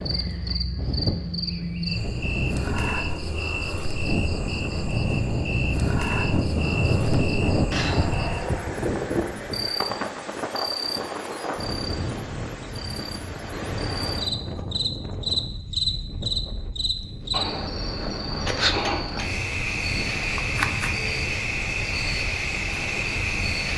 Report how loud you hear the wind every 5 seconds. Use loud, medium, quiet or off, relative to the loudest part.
medium, loud, medium, quiet, quiet.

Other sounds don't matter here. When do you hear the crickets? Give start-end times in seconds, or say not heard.
0.0-23.7.